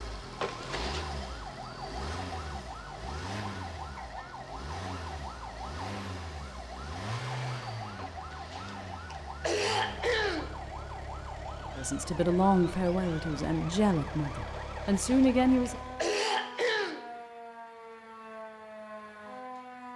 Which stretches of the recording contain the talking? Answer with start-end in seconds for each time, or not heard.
11.8-15.8.